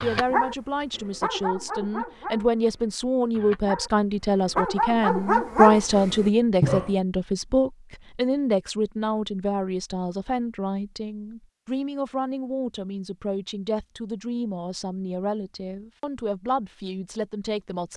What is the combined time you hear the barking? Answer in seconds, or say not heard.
7 s.